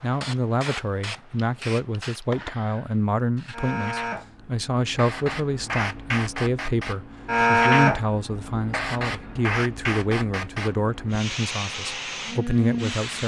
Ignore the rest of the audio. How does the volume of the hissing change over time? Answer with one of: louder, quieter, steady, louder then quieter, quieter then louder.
louder then quieter.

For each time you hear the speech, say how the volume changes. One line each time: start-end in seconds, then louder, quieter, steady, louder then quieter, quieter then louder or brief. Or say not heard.
0.0-13.2 steady.